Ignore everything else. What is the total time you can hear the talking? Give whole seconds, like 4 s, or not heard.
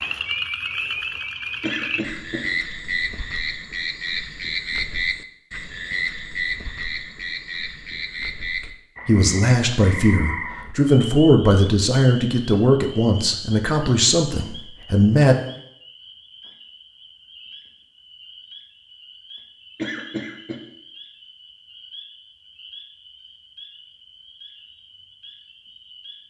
7 s.